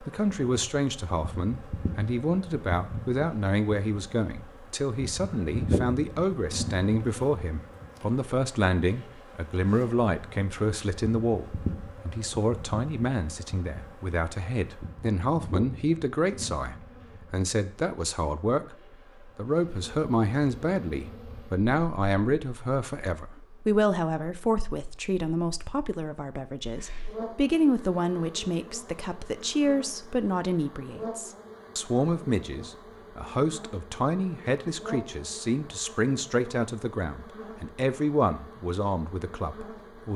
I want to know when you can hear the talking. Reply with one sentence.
The talking can be heard from 0.0 to 40.1 s.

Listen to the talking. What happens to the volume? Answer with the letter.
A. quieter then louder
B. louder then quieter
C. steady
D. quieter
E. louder
C.